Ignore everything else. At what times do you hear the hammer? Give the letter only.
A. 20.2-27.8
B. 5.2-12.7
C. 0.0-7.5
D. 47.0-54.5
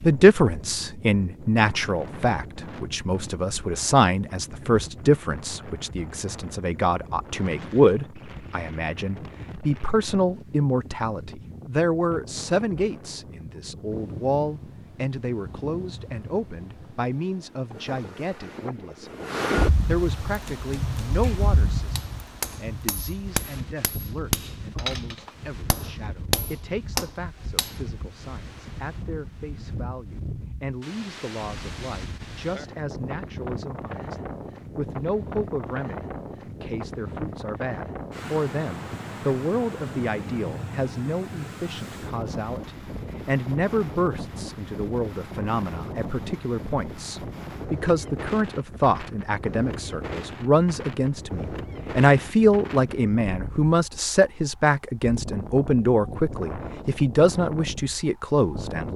A.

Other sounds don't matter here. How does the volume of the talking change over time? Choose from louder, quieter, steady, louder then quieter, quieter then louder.
quieter then louder.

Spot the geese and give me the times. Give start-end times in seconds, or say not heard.
not heard.